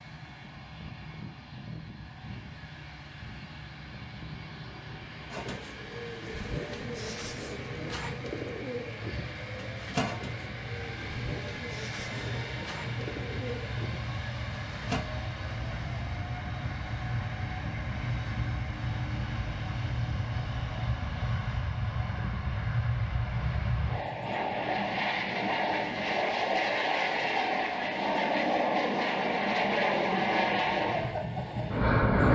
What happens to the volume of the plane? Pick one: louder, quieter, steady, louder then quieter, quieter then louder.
louder.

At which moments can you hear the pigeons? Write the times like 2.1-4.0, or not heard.
5.3-15.1.